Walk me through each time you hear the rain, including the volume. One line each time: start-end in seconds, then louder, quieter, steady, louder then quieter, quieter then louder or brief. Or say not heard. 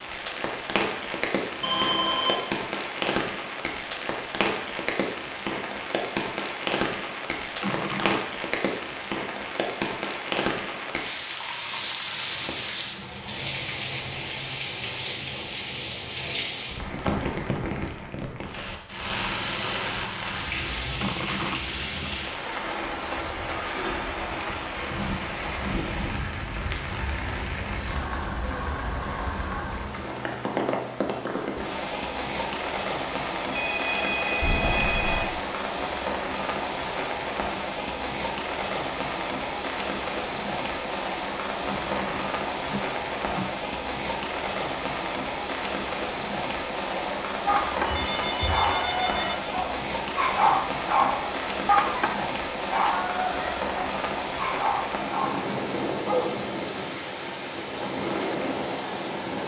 0.0-59.4 steady.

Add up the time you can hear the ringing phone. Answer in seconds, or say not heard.
4 s.